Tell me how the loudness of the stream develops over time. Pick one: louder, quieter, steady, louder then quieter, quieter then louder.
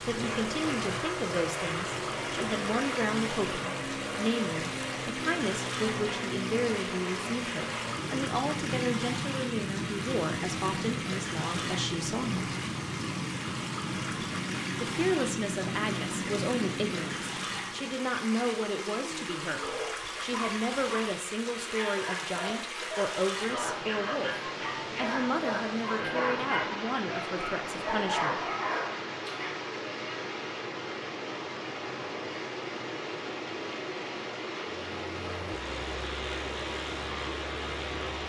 steady.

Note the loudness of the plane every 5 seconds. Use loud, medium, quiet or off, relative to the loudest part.
loud, loud, loud, loud, off, off, off, medium.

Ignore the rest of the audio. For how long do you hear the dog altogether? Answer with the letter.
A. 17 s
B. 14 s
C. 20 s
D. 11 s
D.